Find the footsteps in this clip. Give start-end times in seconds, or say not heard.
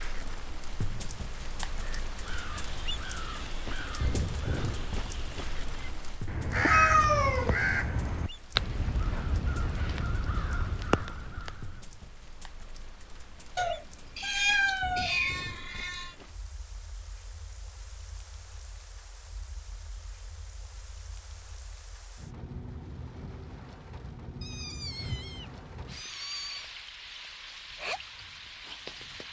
not heard.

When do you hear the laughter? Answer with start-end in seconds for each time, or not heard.
not heard.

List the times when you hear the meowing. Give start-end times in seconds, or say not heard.
6.5-7.7, 13.6-16.1, 24.4-26.6.